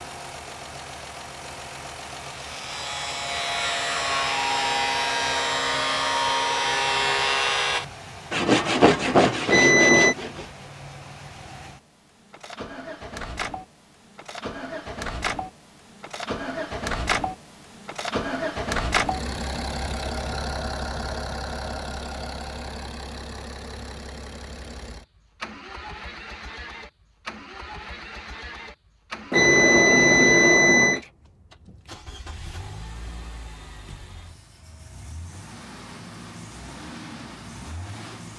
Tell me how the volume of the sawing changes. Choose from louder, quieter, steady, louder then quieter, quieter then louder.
louder.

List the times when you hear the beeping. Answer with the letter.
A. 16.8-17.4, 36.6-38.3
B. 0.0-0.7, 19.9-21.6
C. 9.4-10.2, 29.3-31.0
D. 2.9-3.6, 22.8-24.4
C.